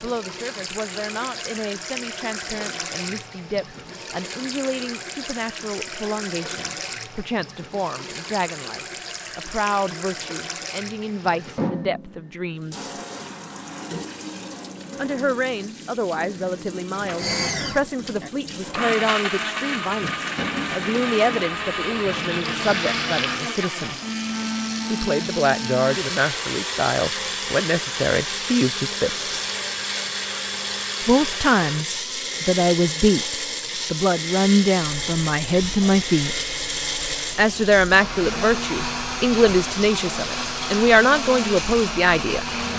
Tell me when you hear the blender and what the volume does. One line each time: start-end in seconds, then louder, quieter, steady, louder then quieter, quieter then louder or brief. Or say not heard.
17.1-42.7 steady.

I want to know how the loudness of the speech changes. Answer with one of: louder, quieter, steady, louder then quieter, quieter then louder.
louder.